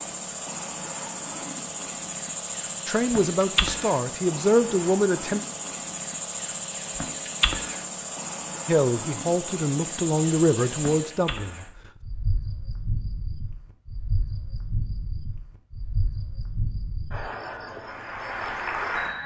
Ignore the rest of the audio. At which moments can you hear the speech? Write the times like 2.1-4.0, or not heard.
2.9-5.4, 8.7-11.7.